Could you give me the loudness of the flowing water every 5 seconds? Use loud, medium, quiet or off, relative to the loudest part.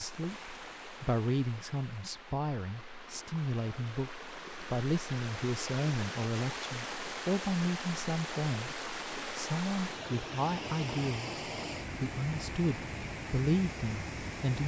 medium, loud, loud.